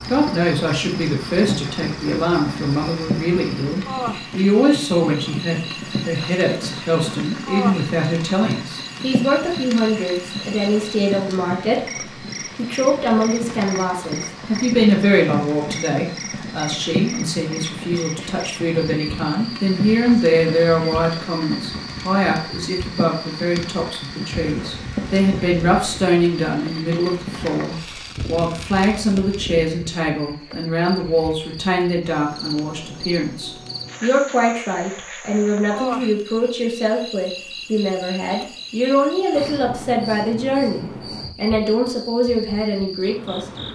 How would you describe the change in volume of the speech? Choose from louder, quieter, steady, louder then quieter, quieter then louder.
steady.